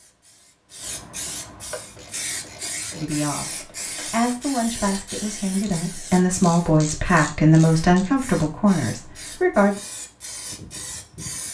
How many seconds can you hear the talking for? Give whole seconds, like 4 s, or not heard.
7 s.